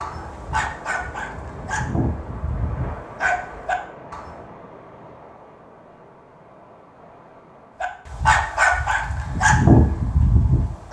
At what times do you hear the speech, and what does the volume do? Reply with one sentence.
The speech can't be heard in this clip.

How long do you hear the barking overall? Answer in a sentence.
The barking can be heard for 7 seconds in total.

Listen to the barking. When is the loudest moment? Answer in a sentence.
The loudest moment of the barking is at 10 seconds.